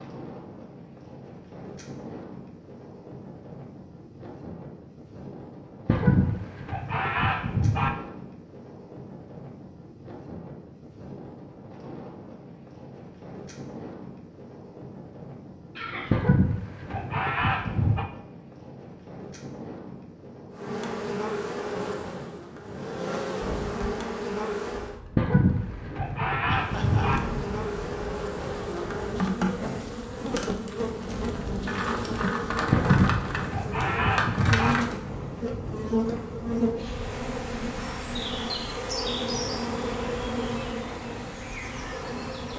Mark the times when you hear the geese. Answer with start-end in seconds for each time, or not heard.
5.8-7.9, 16.1-18.1, 25.1-27.2, 32.7-34.8.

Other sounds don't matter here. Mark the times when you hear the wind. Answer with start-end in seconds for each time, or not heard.
0.0-42.5.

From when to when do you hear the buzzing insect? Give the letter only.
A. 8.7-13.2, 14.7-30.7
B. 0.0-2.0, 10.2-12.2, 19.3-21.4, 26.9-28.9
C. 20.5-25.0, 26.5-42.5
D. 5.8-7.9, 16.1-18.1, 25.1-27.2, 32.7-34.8
C.